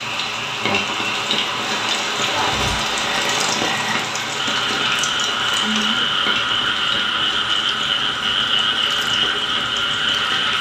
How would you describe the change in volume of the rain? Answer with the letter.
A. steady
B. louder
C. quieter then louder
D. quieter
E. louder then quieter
D.